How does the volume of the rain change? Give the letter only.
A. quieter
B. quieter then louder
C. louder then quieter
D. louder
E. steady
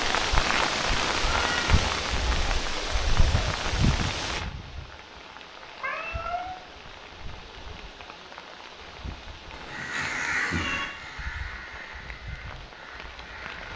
A.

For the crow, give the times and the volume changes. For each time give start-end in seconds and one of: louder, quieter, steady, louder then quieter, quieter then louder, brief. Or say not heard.
9.7-13.7 quieter.